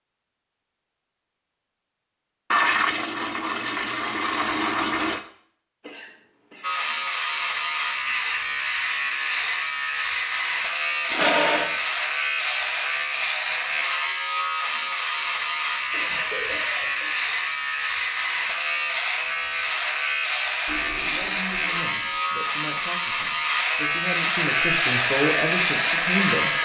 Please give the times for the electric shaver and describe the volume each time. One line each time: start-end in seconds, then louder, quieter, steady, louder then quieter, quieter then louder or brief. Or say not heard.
6.6-26.6 steady.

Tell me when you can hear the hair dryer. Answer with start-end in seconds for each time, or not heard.
24.4-26.6.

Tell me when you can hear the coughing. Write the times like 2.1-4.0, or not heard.
5.8-6.7, 15.9-17.1.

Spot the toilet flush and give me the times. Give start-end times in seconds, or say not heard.
2.5-5.2, 11.1-11.8, 20.6-22.2.